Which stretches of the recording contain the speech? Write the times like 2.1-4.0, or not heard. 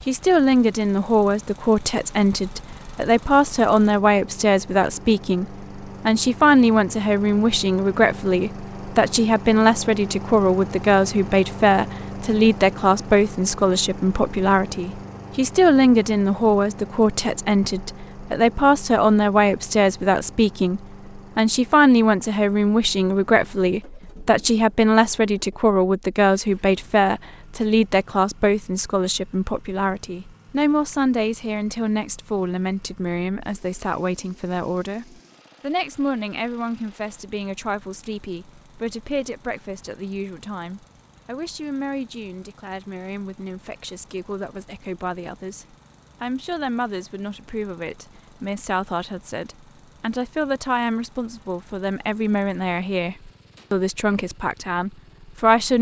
0.1-55.7.